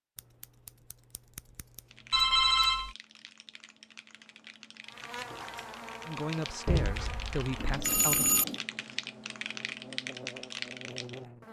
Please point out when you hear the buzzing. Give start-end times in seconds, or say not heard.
4.8-11.4.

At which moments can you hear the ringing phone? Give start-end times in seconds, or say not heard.
2.1-3.0, 6.7-8.4.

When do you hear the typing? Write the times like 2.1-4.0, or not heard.
1.9-11.2.